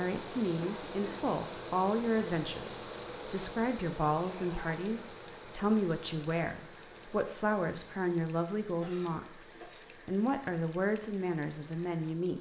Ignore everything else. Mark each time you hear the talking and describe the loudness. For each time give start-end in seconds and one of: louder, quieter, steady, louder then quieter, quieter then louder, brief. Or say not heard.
0.0-12.3 steady.